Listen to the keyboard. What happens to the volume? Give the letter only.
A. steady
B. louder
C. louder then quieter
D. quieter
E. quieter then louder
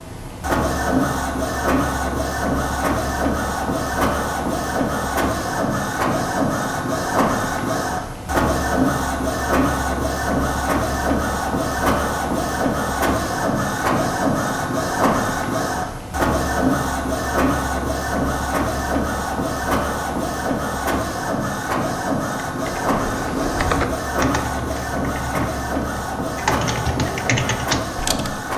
E.